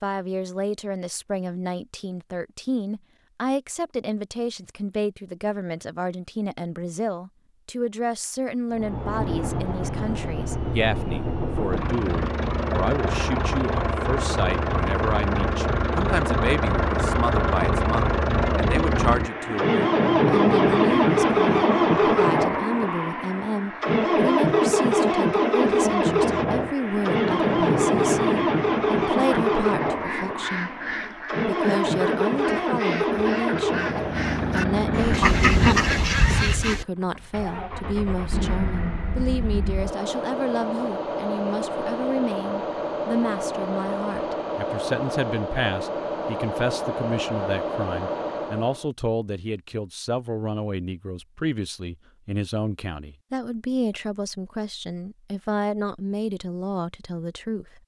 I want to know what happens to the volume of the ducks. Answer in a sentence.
The volume of the ducks goes up.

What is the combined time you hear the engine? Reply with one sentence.
You can hear the engine for 40 seconds altogether.